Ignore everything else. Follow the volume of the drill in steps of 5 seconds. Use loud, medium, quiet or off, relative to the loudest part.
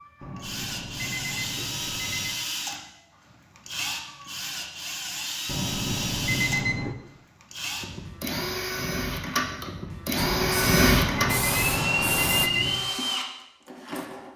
medium, medium, loud.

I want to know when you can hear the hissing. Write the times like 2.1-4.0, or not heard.
10.2-12.5.